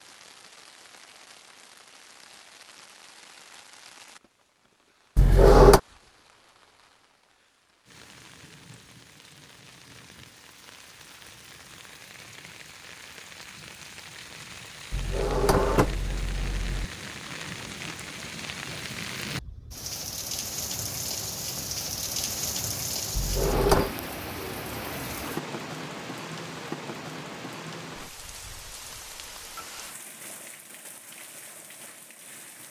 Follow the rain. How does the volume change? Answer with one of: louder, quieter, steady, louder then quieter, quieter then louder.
louder then quieter.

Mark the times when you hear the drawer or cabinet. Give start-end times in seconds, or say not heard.
5.2-5.8, 14.9-16.9, 23.1-23.9.